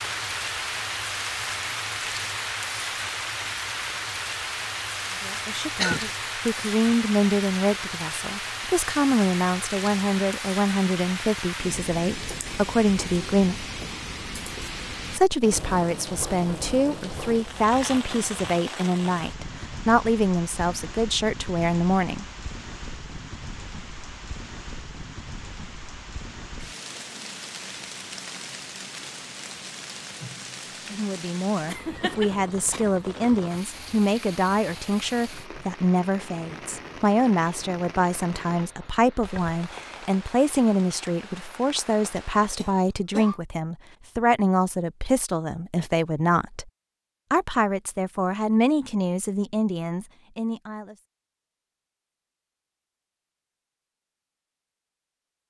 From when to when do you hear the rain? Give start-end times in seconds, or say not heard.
0.0-42.7.